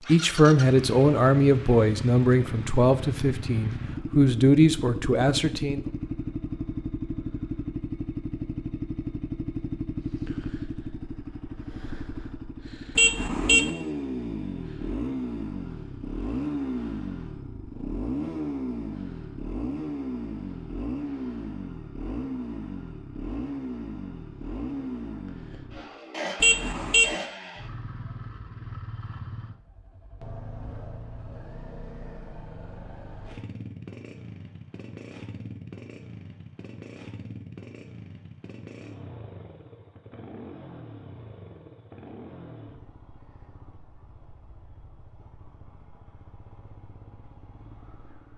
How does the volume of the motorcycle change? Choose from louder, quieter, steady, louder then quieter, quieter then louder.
quieter.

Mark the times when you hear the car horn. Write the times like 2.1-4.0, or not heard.
12.9-13.7, 26.4-27.1.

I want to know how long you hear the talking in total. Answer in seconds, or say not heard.
6 s.